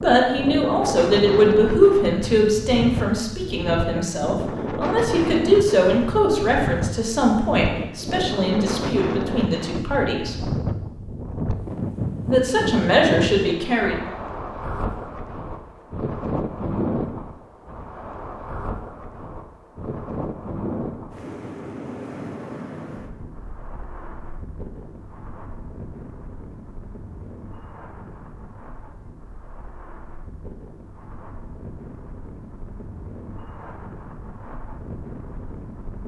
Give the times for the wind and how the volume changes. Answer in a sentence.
The wind can be heard from 0.0 to 36.0 s, getting quieter.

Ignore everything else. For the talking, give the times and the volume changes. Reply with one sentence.
The talking can be heard from 0.0 to 10.3 s, getting quieter; and briefly from 12.2 to 14.1 s.